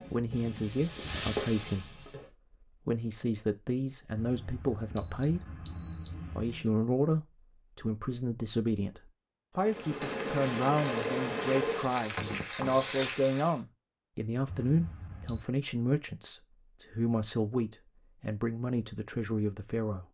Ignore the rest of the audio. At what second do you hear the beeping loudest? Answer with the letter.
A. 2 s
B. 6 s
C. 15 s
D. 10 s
B.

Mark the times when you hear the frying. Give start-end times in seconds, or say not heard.
0.0-2.3, 9.6-13.6.